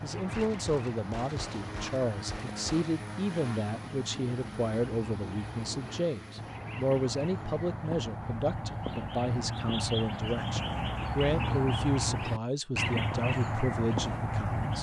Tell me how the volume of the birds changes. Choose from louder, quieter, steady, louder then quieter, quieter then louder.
louder.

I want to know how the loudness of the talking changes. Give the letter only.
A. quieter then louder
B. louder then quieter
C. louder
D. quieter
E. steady
E.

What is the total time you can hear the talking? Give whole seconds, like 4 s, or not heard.
15 s.